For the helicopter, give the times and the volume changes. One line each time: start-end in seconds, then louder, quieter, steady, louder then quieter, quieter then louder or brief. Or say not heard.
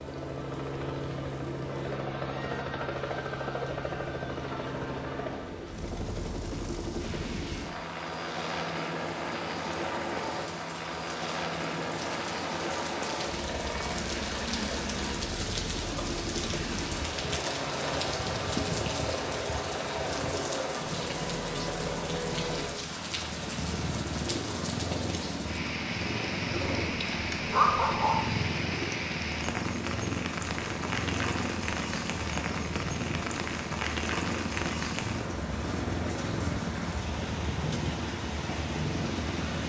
0.0-39.6 steady.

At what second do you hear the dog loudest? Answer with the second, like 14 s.
28 s.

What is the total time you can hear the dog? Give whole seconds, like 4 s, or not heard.
2 s.